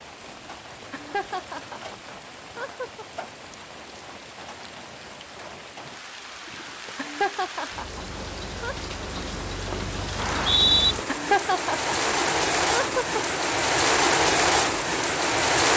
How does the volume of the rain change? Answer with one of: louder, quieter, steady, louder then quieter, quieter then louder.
louder.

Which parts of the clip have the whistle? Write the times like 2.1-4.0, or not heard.
10.2-10.9.